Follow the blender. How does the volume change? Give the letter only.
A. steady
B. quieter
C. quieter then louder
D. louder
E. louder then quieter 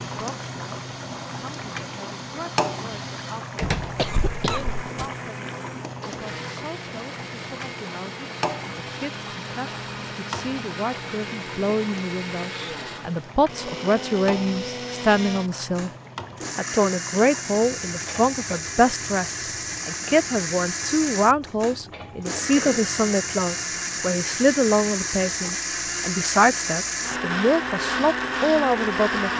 D.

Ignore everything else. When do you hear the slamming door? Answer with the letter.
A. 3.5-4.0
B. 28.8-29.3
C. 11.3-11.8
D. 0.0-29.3
A.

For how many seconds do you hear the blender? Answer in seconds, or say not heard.
29 s.